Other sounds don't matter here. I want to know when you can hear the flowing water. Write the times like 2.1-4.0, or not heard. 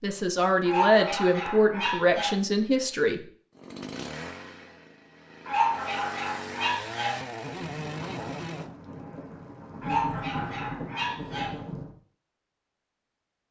not heard.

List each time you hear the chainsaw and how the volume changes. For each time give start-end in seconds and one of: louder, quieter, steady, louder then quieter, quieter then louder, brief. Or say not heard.
3.5-8.8 quieter then louder.